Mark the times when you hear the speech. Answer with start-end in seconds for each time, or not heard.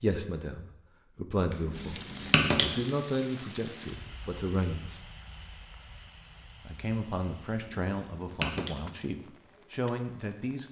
0.0-5.0, 6.7-10.6.